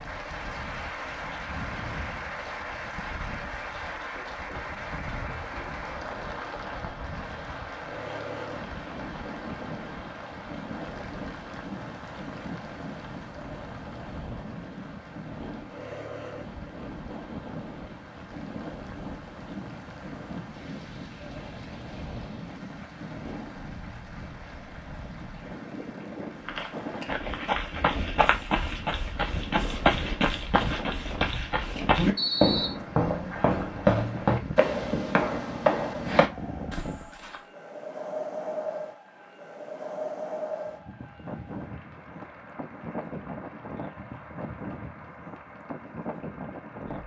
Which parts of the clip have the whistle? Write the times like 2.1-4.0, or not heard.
32.1-32.8.